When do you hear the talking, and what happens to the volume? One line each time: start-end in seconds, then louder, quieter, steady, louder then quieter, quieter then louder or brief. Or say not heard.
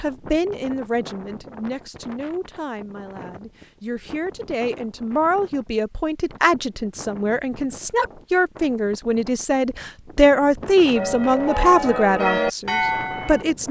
0.0-13.6 louder.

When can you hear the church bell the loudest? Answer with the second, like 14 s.
12 s.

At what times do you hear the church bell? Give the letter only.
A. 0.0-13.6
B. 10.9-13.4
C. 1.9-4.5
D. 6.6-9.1
B.